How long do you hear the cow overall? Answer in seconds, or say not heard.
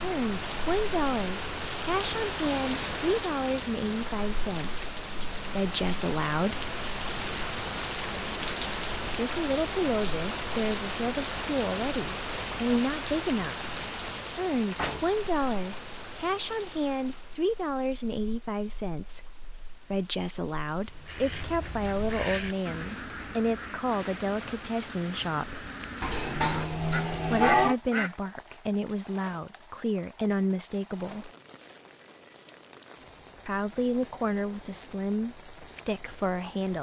2 s.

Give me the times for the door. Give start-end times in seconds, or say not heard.
14.8-15.5.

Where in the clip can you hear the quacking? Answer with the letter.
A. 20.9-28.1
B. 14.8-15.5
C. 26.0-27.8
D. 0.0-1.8
A.